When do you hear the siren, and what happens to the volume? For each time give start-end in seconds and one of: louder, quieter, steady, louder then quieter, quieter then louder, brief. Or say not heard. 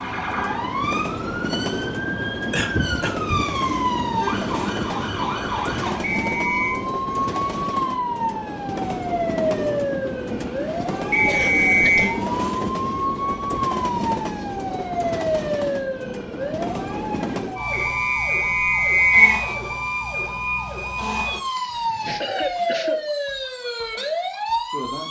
0.0-25.0 steady.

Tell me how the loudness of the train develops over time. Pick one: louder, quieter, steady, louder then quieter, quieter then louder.
steady.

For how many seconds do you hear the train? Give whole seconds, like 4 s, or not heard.
18 s.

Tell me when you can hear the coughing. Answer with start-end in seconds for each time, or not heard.
2.5-3.5, 11.2-12.2, 21.4-23.0.